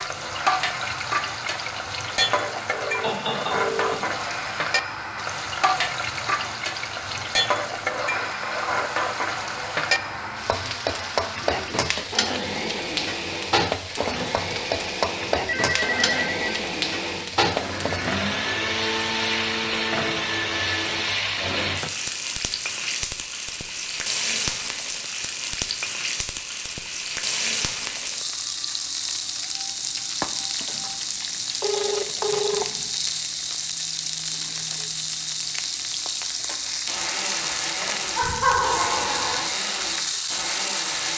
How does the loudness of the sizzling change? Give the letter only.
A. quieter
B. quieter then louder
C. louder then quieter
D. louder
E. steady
E.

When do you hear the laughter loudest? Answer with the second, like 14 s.
39 s.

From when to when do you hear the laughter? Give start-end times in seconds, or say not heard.
3.0-4.0, 38.1-39.4.